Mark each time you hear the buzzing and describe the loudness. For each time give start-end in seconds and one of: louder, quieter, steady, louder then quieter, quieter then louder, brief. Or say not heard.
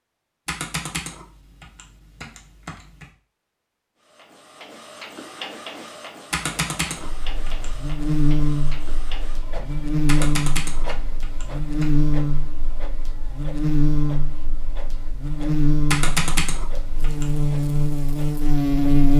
7.0-19.1 steady.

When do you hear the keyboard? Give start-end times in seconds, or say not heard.
0.5-3.0, 6.3-8.0, 10.1-11.8, 15.9-17.4.